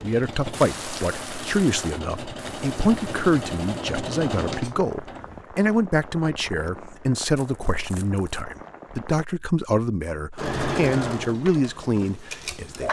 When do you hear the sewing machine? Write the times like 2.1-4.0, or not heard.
0.0-5.5, 10.3-12.8.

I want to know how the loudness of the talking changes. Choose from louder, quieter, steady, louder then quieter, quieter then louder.
steady.